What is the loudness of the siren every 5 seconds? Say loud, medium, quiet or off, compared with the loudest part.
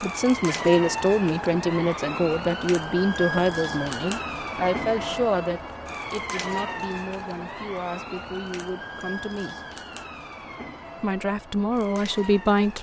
loud, loud, medium.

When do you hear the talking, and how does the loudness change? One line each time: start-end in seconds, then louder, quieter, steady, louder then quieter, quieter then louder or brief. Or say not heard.
0.0-9.6 quieter
11.0-12.7 brief.